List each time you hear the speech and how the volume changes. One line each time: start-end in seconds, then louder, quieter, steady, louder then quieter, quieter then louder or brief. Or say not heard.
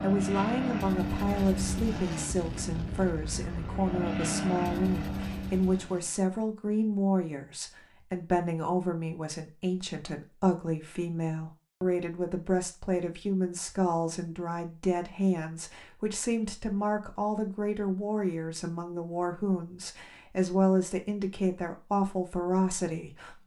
0.0-23.4 steady.